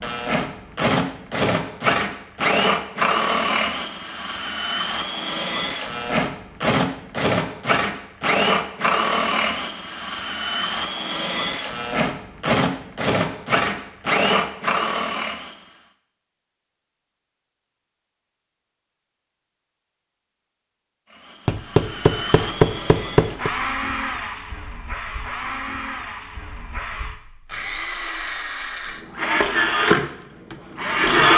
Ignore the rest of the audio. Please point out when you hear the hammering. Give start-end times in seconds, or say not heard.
21.4-23.5.